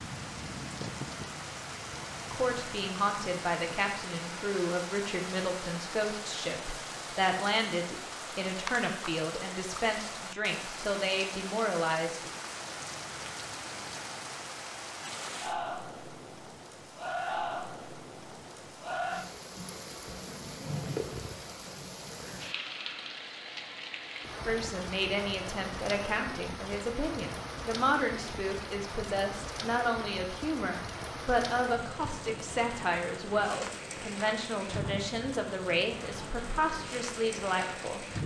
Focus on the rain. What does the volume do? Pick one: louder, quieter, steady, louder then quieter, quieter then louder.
steady.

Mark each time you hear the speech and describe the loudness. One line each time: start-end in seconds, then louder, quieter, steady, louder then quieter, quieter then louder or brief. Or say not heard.
2.3-12.3 steady
24.4-38.0 steady.